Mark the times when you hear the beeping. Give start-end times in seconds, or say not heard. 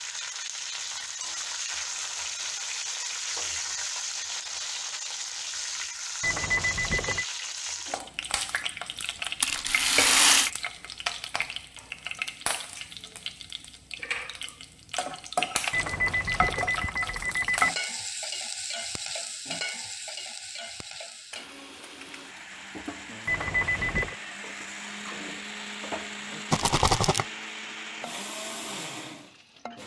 6.2-7.2, 15.7-17.7, 23.2-24.1.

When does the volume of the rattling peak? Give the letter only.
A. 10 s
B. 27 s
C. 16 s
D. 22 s
A.